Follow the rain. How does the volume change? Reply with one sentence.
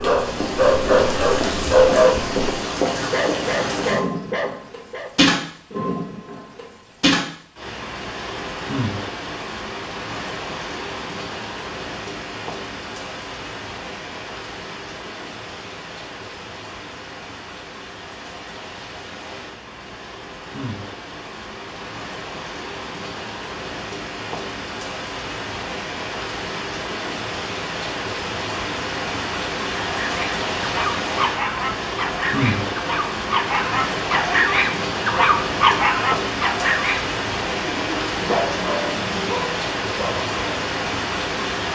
The volume of the rain goes down, then up.